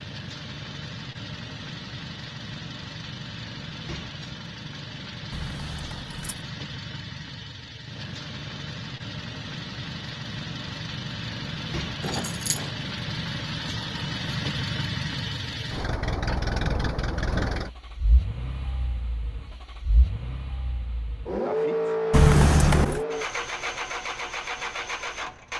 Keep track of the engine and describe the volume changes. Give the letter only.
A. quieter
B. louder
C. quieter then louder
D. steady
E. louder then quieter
B.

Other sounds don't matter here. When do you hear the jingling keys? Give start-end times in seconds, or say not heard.
5.3-6.4, 12.0-12.7, 22.1-23.1.